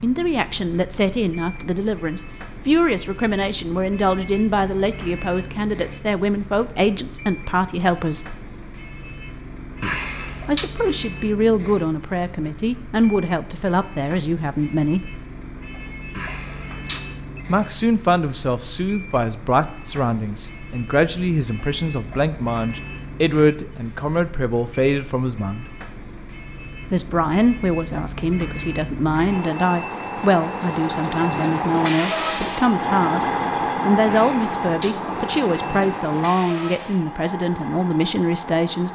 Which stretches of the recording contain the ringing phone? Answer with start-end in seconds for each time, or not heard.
9.8-10.7, 16.1-17.4, 34.0-35.0.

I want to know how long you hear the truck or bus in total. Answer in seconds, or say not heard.
39 s.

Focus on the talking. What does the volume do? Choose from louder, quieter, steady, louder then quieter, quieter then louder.
steady.